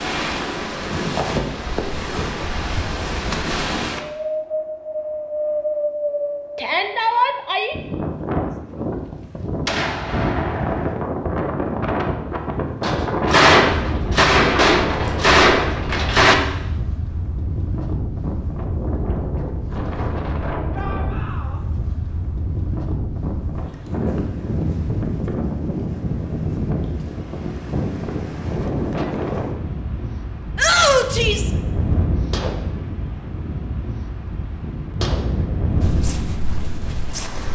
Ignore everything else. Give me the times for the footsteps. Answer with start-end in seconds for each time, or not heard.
35.8-37.5.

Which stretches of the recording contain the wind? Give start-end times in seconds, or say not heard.
0.0-37.5.